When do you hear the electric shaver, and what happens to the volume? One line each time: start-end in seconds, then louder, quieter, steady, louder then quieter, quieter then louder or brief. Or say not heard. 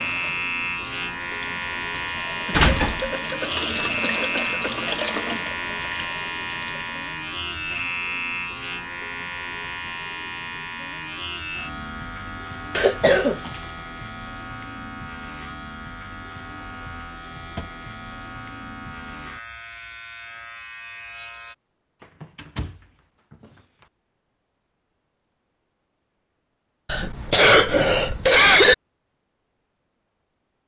0.0-21.6 quieter.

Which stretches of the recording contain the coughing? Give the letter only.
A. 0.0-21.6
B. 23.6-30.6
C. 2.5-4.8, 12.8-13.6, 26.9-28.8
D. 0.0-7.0
C.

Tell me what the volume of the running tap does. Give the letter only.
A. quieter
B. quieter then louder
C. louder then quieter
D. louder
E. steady
C.